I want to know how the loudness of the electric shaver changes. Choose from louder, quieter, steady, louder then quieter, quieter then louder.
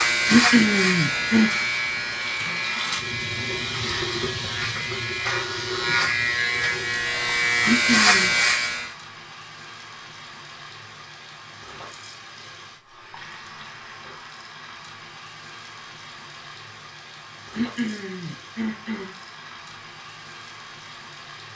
quieter then louder.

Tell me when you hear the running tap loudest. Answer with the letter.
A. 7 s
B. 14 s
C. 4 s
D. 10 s
C.